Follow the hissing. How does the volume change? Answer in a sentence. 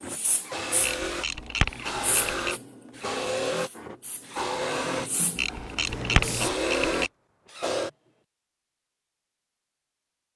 The volume of the hissing goes down, then up.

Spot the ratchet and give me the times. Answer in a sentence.
The ratchet can be heard from 0.8 to 2.5 s and from 5.3 to 7.1 s.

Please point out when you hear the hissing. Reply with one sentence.
You can hear the hissing from 0.0 to 6.5 s.